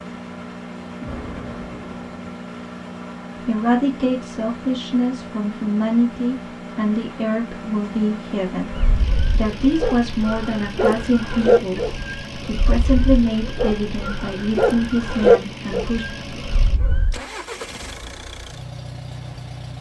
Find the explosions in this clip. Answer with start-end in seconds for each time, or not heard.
1.0-2.4.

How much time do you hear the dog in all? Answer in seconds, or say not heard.
9 s.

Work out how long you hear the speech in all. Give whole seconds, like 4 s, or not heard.
13 s.